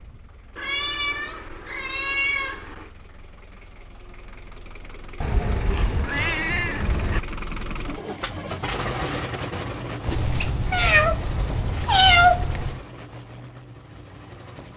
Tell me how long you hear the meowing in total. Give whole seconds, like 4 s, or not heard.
7 s.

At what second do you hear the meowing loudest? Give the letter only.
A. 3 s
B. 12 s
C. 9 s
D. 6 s
B.